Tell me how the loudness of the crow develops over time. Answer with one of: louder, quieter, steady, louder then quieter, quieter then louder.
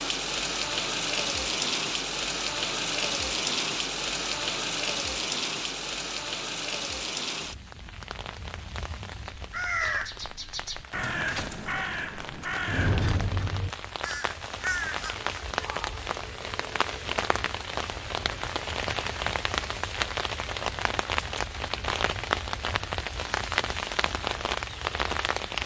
steady.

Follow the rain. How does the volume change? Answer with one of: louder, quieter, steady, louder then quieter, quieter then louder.
quieter then louder.